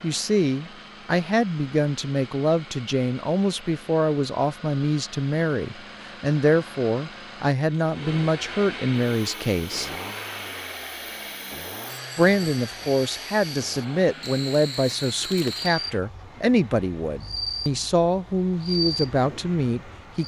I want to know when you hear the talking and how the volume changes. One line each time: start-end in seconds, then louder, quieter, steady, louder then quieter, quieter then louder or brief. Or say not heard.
0.0-9.9 steady
12.2-20.2 steady.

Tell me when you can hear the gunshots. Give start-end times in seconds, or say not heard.
not heard.